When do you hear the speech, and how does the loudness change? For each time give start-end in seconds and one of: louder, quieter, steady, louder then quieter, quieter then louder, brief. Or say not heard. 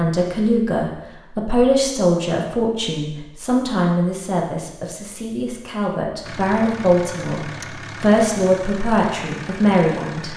0.0-10.3 quieter then louder.